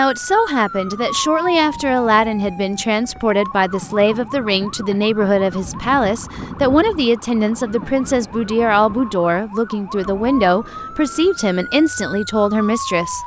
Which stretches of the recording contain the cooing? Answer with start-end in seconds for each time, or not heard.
not heard.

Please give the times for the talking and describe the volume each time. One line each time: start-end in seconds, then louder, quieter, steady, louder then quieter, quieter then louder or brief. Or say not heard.
0.0-13.2 steady.